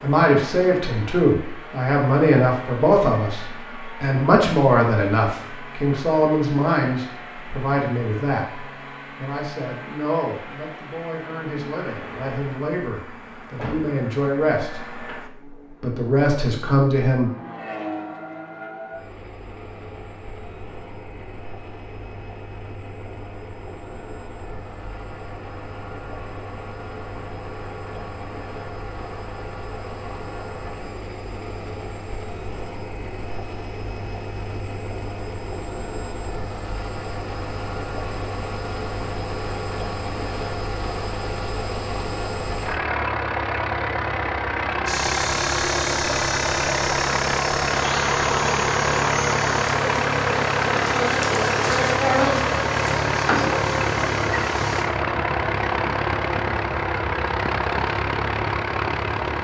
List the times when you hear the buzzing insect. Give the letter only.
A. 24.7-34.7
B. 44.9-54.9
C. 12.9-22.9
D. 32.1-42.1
B.